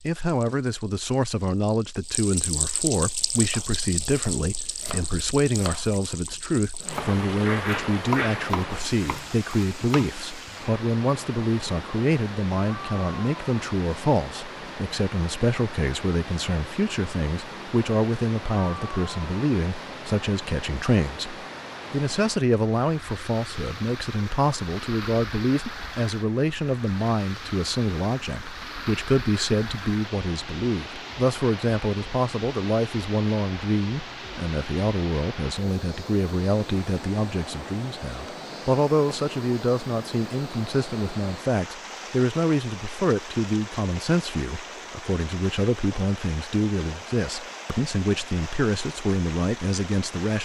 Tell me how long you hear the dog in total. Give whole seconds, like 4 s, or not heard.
2 s.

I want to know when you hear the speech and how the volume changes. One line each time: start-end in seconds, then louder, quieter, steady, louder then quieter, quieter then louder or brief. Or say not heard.
0.0-50.4 steady.